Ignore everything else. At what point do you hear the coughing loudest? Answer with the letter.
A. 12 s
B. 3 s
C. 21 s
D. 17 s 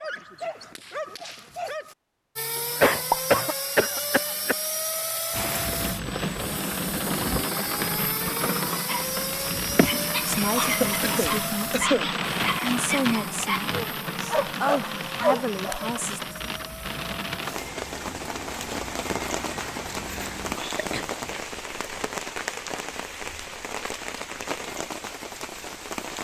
B.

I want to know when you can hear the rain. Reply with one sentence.
The rain can be heard from 5.3 to 26.1 s.